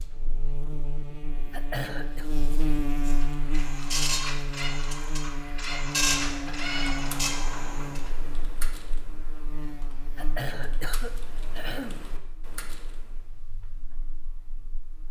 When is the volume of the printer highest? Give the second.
6 s.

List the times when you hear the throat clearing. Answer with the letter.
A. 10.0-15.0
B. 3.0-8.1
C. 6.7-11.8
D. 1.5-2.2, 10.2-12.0
D.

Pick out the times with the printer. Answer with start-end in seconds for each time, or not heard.
3.0-8.1.